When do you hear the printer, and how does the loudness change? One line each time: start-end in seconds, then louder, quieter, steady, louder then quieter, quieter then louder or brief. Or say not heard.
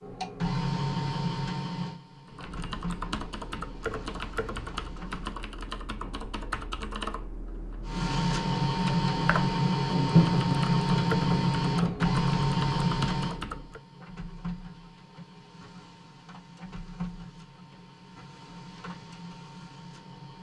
0.0-5.5 quieter
7.8-20.3 quieter.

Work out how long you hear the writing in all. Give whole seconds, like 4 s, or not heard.
2 s.